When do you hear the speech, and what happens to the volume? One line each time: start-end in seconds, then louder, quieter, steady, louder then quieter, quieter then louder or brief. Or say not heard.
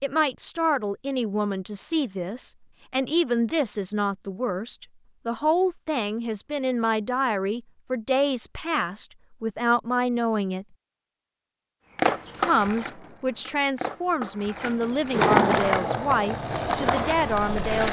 0.0-10.7 steady
12.3-17.8 steady.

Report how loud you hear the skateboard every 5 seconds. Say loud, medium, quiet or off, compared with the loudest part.
off, off, medium, loud.